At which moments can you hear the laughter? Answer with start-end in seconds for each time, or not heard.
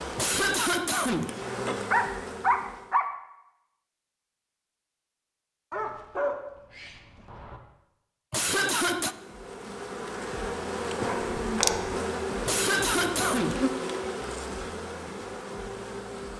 0.1-1.3, 8.3-9.2, 12.4-13.6.